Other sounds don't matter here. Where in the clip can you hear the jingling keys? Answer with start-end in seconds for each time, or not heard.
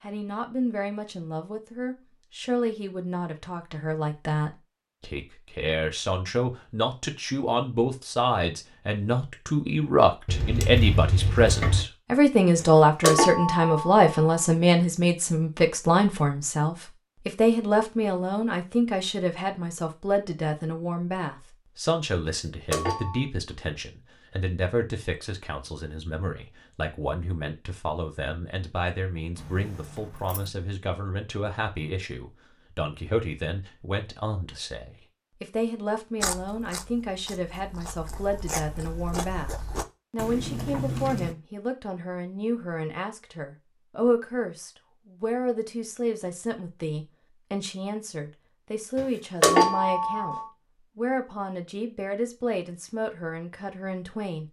10.2-11.8, 29.4-30.5.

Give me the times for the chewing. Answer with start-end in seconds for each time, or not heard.
36.2-41.4.